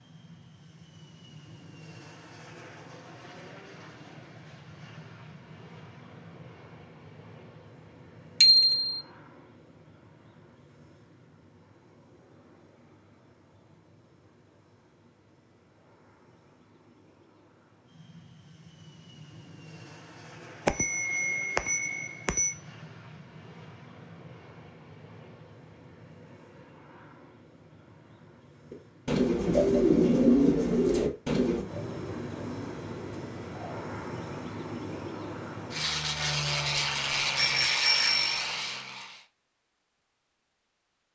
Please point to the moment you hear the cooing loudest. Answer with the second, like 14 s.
30 s.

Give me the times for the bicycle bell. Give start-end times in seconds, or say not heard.
8.4-9.0, 20.6-22.6, 37.4-38.4.